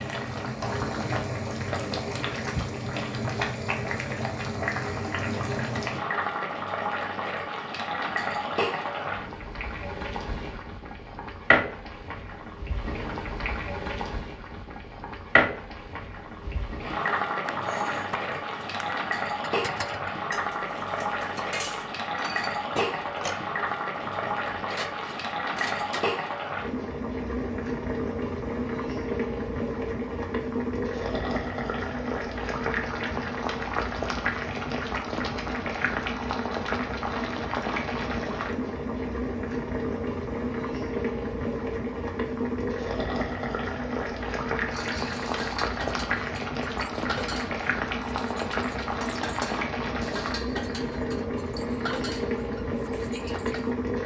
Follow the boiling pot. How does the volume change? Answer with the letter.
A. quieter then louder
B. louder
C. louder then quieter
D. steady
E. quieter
D.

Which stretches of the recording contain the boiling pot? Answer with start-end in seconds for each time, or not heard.
0.0-54.0.